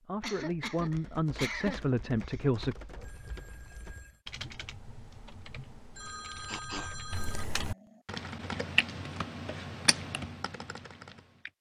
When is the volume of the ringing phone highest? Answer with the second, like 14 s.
7 s.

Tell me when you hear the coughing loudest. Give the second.
2 s.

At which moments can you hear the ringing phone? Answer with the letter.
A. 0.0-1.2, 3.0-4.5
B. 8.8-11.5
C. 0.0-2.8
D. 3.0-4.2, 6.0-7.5
D.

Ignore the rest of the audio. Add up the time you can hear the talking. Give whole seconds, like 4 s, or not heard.
3 s.